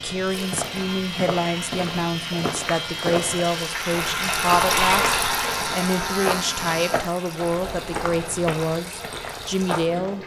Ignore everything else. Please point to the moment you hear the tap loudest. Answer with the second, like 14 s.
5 s.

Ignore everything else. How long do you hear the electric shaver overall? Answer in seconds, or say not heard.
7 s.